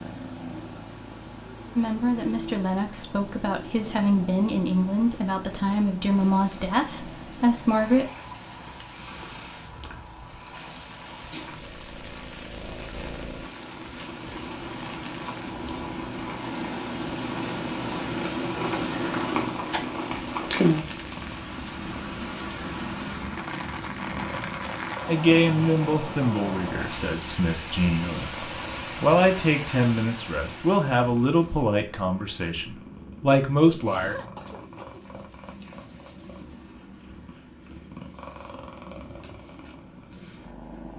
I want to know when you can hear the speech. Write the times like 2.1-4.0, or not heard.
1.8-8.1, 25.1-34.1.